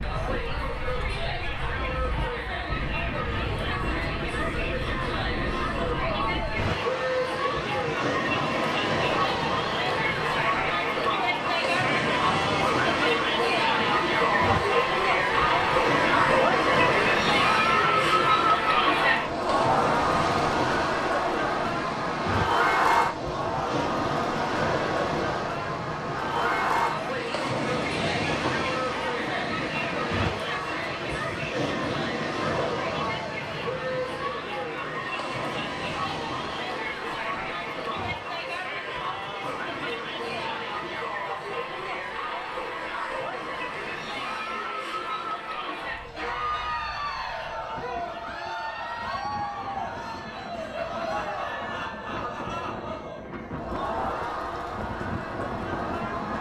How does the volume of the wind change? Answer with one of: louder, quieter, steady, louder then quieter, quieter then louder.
quieter.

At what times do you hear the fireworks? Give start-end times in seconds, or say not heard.
not heard.